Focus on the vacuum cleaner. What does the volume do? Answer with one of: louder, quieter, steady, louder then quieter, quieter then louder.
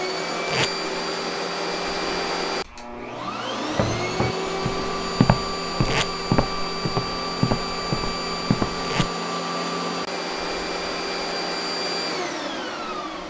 steady.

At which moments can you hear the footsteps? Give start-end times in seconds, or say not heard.
3.7-9.1.